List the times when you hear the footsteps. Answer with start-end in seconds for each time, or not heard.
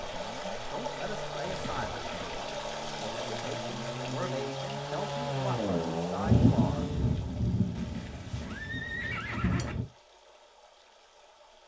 not heard.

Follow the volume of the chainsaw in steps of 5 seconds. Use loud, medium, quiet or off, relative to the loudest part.
medium, loud, off.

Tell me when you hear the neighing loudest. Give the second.
9 s.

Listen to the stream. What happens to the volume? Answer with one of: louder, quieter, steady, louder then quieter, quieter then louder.
quieter.